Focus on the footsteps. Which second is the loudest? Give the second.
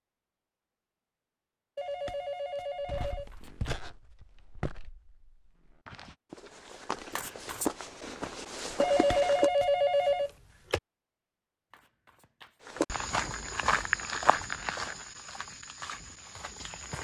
14 s.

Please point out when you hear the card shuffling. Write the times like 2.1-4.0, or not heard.
3.1-3.8, 7.1-7.7, 11.7-12.7.